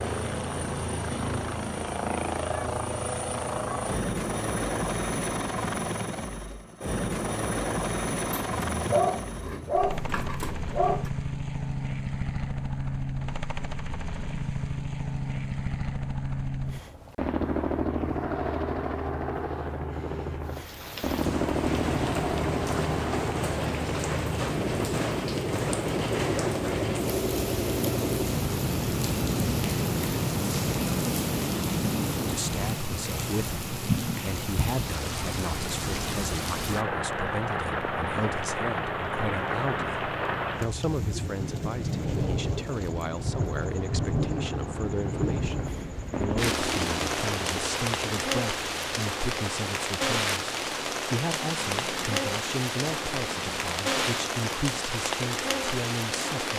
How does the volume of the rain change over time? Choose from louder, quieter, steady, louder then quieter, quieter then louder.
steady.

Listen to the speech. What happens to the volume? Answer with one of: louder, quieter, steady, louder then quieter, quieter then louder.
steady.